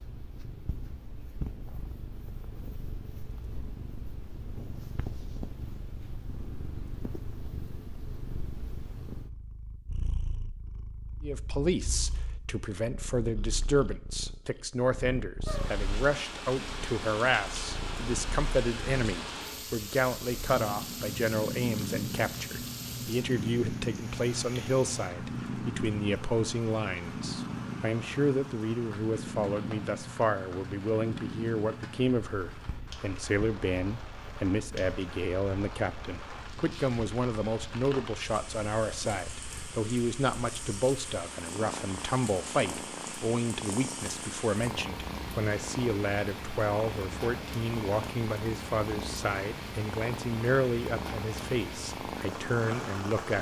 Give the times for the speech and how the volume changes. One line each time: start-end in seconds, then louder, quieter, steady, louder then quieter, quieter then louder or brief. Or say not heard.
11.2-53.3 steady.